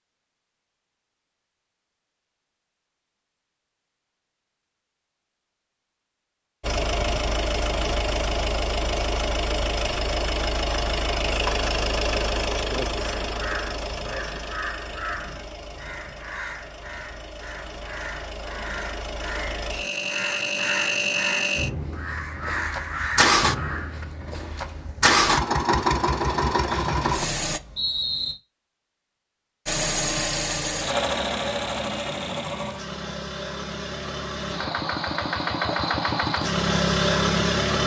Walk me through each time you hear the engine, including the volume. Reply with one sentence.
The engine can be heard from 6.6 to 27.6 s, getting quieter then louder; and from 29.6 to 37.8 s, getting quieter then louder.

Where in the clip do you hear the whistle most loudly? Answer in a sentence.
The loudest moment of the whistle is at 28 seconds.